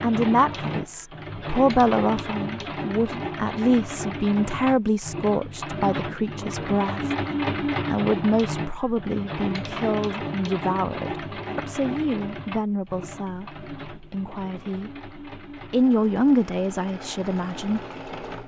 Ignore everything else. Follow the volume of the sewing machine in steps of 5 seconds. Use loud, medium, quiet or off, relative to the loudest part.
loud, loud, medium, medium.